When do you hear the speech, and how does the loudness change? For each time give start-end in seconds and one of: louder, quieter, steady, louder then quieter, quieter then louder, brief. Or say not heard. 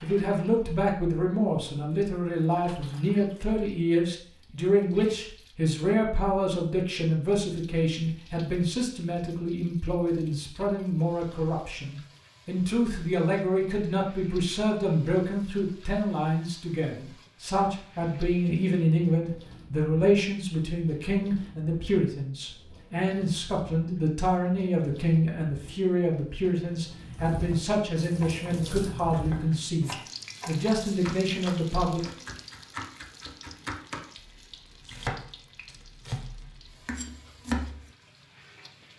0.0-32.0 steady.